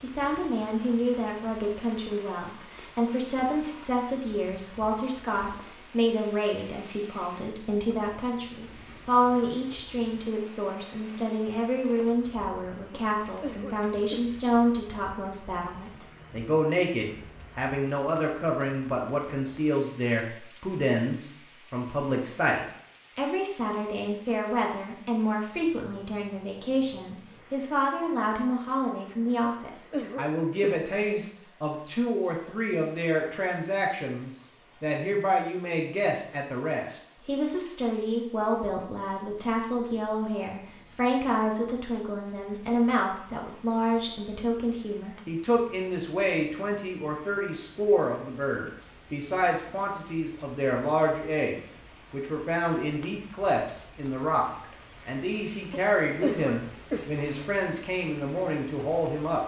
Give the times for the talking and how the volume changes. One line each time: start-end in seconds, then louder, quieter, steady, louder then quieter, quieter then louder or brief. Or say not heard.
0.0-59.4 steady.